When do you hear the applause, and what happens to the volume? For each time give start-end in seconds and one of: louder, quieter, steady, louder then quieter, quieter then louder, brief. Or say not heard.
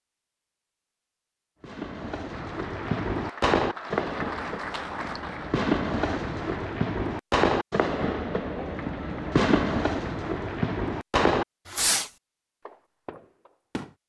2.2-6.7 louder then quieter.